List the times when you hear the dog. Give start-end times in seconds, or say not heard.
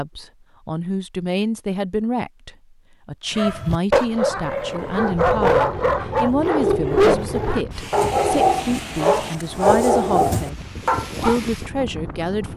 3.4-11.4.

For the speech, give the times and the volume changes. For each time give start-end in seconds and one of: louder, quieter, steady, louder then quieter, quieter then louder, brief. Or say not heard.
0.0-12.5 steady.